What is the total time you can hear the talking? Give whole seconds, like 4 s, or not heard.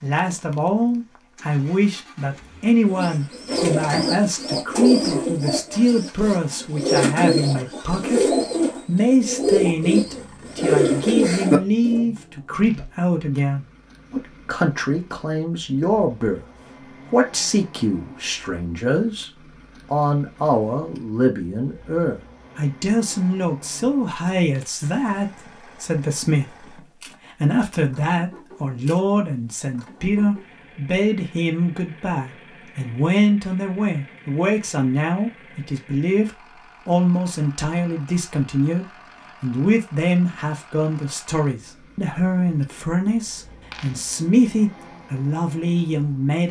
46 s.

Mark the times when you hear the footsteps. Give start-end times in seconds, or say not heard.
not heard.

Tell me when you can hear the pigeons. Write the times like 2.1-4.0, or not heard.
2.9-12.1.